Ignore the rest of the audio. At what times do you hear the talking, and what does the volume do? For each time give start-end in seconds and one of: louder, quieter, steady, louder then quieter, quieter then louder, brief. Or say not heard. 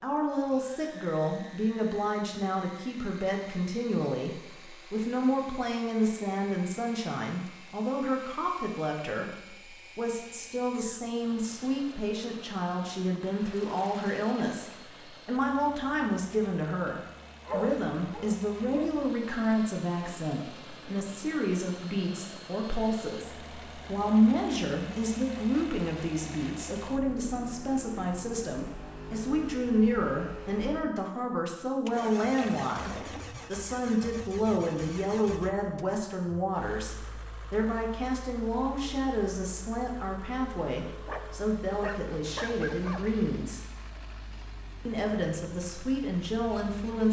0.0-43.6 steady
44.9-47.0 brief.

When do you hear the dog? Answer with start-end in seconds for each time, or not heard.
17.4-18.9, 41.0-43.0.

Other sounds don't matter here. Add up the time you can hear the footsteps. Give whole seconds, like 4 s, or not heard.
not heard.